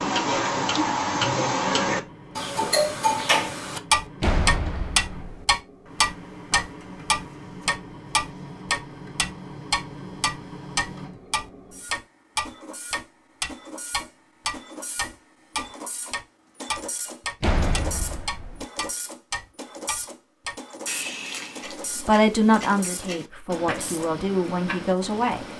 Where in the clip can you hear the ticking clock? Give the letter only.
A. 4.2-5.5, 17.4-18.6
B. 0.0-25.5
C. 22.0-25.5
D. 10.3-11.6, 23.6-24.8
B.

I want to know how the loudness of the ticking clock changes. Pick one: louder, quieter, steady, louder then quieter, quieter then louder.
quieter.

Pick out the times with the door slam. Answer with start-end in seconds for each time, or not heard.
4.2-5.5, 17.4-18.6.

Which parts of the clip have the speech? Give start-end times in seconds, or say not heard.
22.0-25.5.